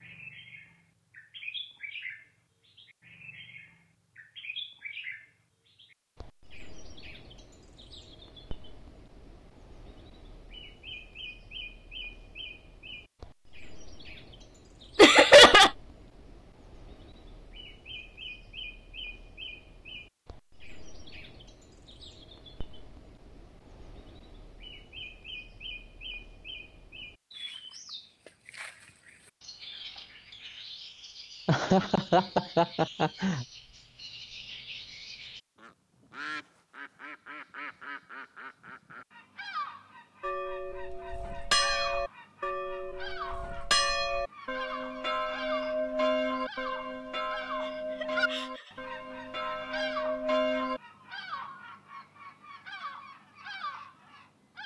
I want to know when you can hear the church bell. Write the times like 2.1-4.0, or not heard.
40.2-50.8.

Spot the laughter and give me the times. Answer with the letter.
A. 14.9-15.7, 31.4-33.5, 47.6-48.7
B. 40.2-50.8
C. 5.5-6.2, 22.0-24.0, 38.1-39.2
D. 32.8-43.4
A.